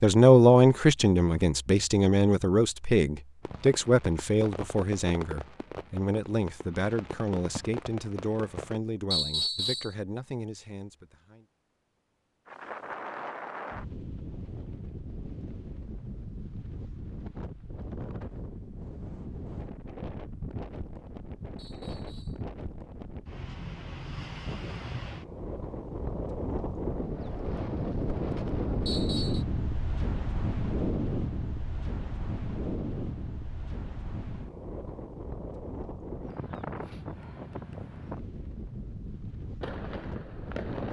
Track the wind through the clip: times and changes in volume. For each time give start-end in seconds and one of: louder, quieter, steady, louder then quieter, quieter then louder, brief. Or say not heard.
12.4-40.8 louder then quieter.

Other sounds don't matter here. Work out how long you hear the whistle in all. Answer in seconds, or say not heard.
2 s.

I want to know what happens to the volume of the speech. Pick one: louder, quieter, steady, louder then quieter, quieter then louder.
quieter.